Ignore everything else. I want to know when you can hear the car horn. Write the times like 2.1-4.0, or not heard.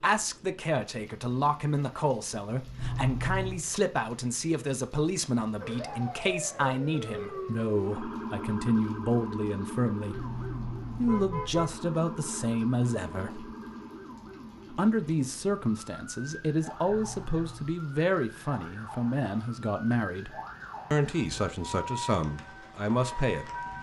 2.8-3.6, 10.1-11.8, 16.9-17.8.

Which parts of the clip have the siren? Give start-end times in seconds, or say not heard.
5.6-23.7.